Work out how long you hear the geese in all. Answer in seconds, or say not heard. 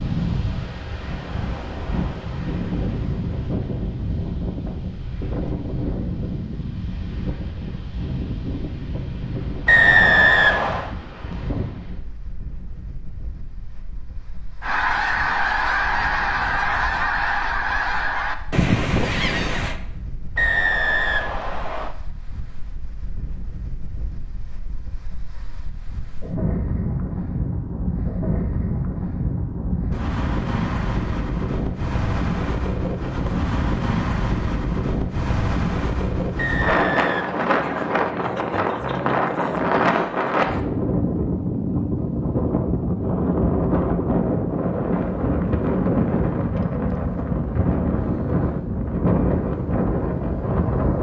5 s.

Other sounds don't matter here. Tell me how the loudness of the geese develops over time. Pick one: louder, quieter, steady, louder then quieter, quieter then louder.
steady.